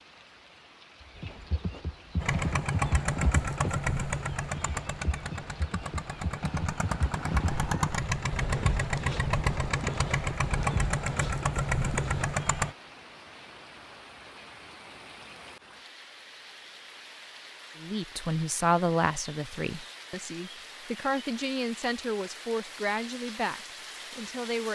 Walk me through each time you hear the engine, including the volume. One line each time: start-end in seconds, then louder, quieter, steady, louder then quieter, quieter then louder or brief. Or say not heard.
2.2-12.8 quieter then louder.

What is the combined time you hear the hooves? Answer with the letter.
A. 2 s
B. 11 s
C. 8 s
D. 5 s
B.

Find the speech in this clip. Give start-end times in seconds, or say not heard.
17.8-24.6.